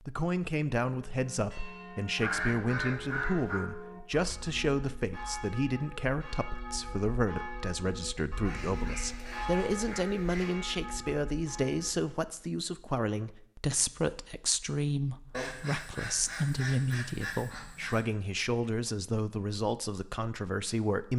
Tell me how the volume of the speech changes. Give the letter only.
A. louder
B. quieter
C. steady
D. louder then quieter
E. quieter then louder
C.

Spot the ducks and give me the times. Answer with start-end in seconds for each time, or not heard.
2.1-3.6, 8.4-10.7, 15.3-18.0.